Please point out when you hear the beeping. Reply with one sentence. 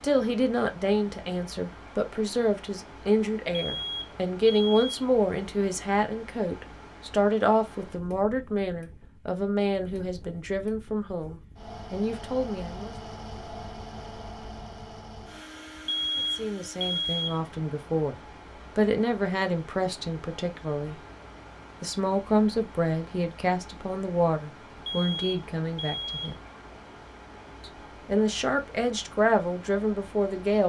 You can hear the beeping from 3.5 to 5.0 s, from 15.9 to 17.4 s and from 24.9 to 26.4 s.